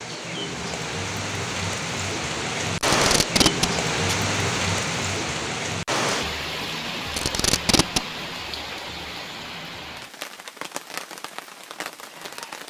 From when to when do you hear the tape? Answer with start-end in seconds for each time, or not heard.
2.8-4.2, 7.1-8.1.